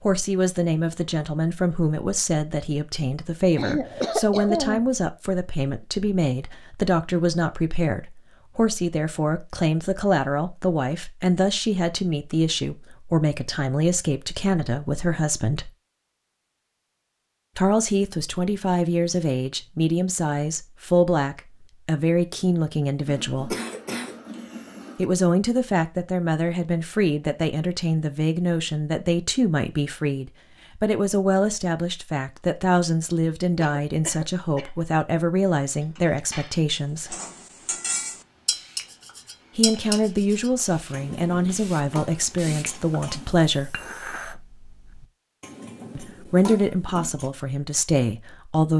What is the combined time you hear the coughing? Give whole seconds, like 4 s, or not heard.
5 s.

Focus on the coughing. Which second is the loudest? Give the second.
4 s.